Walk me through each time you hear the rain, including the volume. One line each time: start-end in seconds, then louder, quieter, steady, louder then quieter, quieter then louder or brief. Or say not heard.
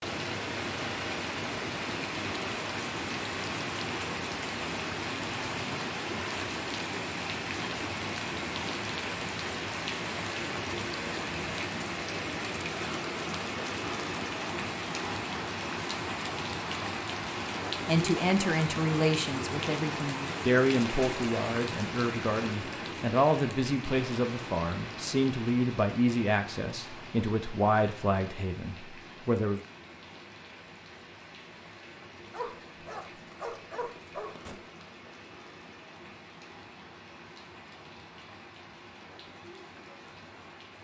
0.0-40.7 quieter.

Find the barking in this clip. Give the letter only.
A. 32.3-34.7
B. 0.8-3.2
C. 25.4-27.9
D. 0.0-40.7
A.